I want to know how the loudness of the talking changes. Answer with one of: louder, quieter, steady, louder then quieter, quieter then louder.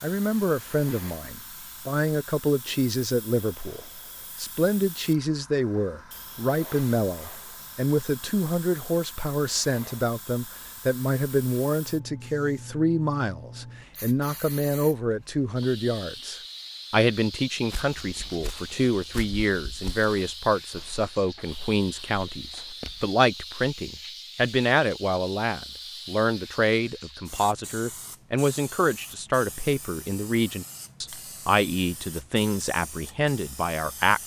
steady.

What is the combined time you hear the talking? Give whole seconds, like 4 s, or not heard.
34 s.